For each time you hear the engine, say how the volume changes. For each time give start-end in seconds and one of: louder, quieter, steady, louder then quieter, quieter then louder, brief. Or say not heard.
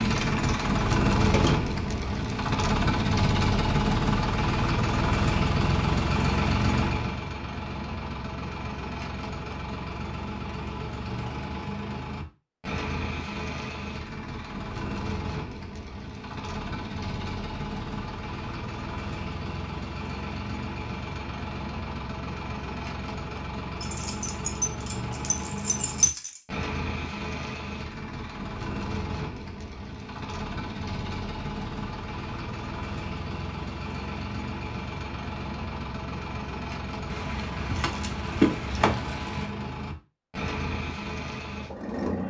0.0-42.2 quieter.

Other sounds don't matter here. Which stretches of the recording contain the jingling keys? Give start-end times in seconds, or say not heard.
0.1-1.7, 23.8-26.4, 37.1-39.5.